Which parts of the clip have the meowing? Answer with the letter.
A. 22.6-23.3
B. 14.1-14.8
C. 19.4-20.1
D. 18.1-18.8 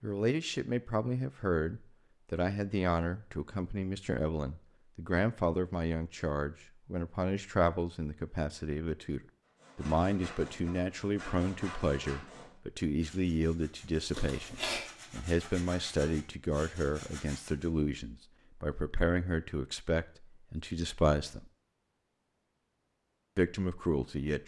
B.